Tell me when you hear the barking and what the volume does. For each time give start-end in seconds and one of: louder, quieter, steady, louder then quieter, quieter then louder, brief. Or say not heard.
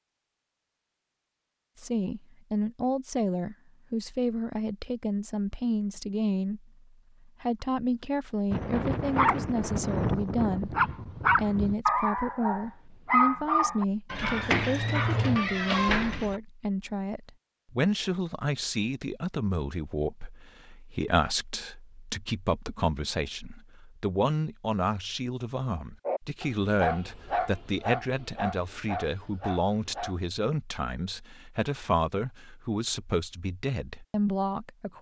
8.5-16.4 steady
26.1-30.2 quieter.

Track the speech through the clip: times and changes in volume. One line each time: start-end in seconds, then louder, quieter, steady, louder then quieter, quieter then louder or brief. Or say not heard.
1.8-34.9 steady.